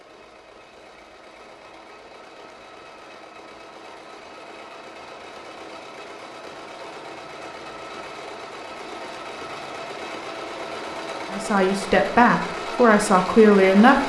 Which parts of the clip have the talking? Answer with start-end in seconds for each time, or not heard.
11.3-14.0.